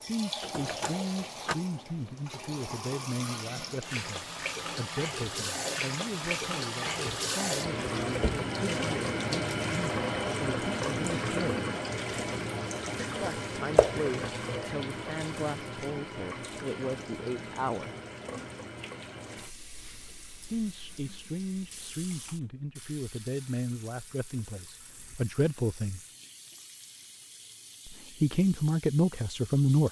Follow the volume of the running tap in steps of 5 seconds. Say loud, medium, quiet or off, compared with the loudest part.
medium, loud, loud, medium, quiet, quiet.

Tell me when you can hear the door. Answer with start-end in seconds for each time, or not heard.
0.4-1.6.